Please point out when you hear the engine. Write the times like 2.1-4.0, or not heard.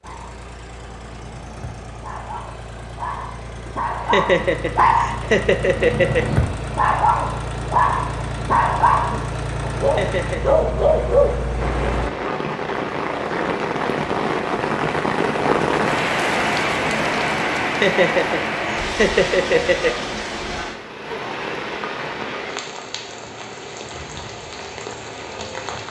0.0-12.1.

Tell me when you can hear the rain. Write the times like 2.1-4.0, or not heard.
11.6-25.8.